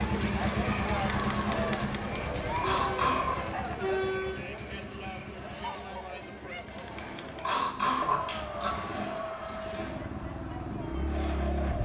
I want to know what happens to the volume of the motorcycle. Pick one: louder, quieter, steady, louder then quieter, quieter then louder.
quieter then louder.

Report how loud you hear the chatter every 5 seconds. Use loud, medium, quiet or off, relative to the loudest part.
loud, medium, medium.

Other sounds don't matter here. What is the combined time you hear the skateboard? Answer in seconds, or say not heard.
not heard.